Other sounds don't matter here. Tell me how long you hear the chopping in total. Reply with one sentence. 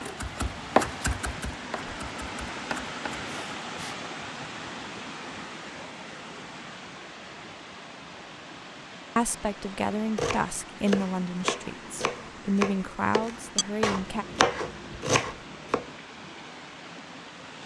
You can hear the chopping for 10 seconds altogether.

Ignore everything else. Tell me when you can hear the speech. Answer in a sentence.
You can hear the speech from 9.2 to 14.2 s.